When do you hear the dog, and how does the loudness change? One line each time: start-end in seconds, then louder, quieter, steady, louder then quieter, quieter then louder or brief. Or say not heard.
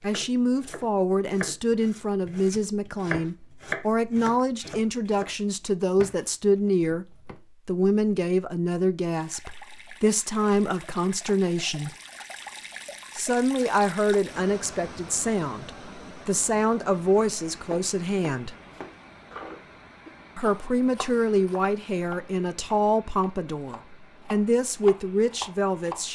not heard.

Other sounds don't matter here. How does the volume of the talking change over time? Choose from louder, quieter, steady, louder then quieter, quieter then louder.
steady.